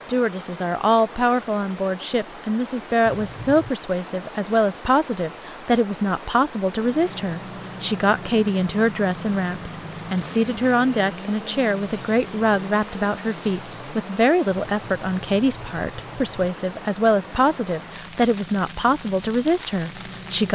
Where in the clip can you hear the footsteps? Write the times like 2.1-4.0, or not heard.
not heard.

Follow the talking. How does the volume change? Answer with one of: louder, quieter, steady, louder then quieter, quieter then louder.
steady.